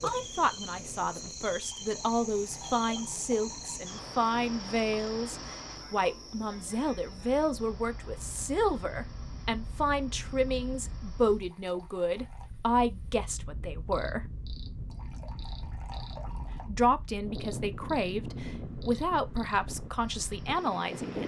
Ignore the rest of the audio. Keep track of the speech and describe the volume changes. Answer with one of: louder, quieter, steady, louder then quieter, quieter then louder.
steady.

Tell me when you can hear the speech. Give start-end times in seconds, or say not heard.
0.0-14.3, 16.6-21.2.